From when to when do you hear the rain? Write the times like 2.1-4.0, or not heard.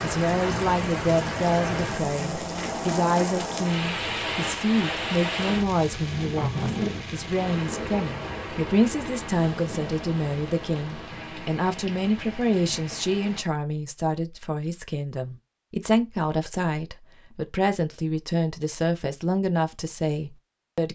0.0-13.4.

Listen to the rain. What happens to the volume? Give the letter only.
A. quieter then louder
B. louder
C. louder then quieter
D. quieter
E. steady
D.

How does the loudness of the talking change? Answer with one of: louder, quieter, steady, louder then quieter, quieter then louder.
steady.